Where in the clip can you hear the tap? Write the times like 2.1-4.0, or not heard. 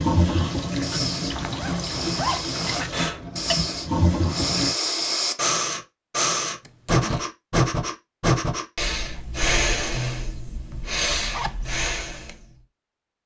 0.0-4.8.